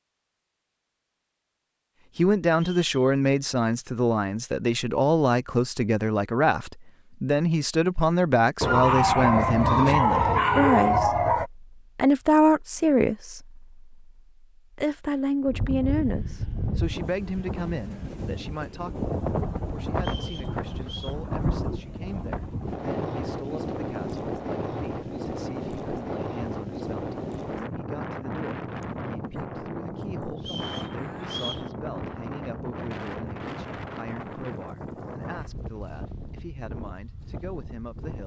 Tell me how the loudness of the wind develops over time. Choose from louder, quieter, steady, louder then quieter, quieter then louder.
quieter.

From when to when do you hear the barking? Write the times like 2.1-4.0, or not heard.
8.6-11.5.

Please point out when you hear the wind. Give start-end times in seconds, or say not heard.
15.4-38.2.